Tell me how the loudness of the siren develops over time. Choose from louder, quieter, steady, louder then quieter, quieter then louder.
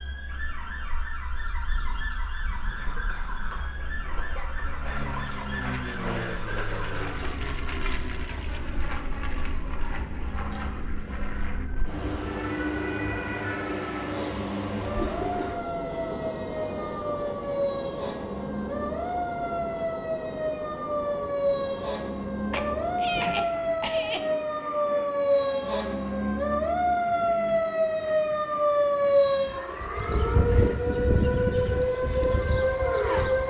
louder.